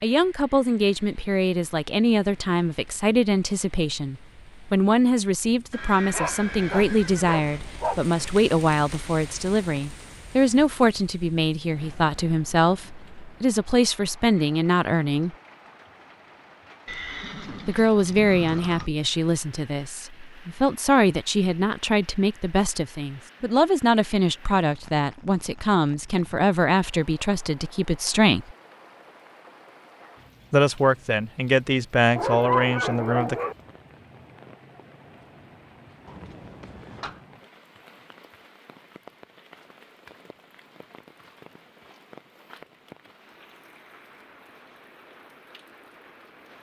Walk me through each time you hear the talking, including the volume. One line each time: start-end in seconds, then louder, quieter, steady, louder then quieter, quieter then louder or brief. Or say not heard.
0.0-15.3 steady
17.6-28.6 steady
30.5-33.4 brief.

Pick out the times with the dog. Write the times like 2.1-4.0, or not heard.
6.1-8.1, 32.1-33.5.